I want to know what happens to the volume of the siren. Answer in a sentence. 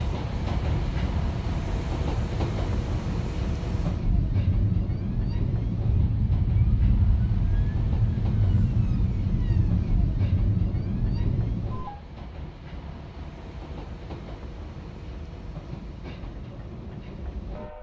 The loudness of the siren goes up.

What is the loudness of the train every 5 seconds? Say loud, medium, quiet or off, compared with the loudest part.
loud, medium, medium, medium.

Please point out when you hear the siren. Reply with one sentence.
You can hear the siren from 0.2 to 12.0 s.